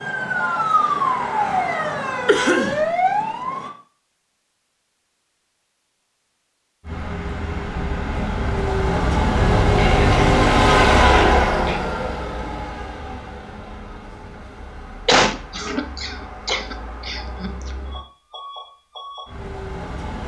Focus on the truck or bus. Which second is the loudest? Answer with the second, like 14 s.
11 s.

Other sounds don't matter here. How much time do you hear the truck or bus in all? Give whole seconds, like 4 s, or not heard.
13 s.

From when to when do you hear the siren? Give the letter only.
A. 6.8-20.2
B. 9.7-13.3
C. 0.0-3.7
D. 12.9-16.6
C.